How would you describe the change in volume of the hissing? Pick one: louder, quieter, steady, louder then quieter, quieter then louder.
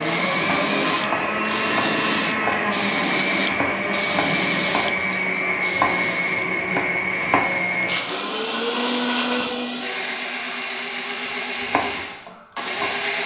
quieter.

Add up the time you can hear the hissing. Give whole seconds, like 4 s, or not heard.
10 s.